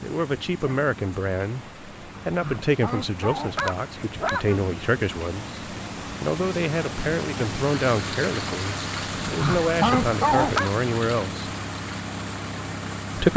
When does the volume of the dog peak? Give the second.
10 s.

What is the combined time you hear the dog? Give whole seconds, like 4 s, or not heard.
4 s.